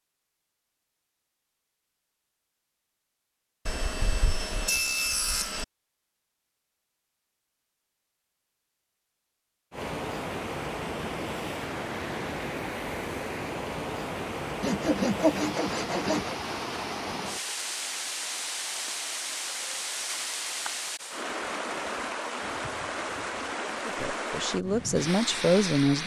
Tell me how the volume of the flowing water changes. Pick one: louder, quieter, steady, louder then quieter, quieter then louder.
steady.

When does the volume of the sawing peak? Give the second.
15 s.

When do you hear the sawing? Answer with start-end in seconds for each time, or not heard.
3.6-5.7, 14.6-16.4.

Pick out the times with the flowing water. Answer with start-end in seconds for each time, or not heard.
9.7-26.0.